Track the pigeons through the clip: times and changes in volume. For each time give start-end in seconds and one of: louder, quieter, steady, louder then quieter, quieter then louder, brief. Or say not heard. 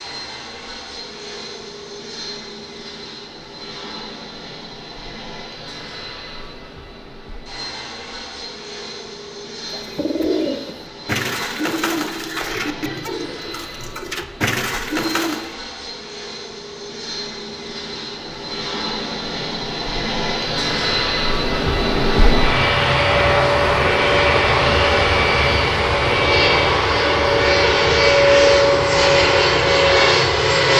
9.7-15.5 quieter then louder.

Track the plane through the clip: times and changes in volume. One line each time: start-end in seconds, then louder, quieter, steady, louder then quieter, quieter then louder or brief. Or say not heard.
0.0-30.7 louder.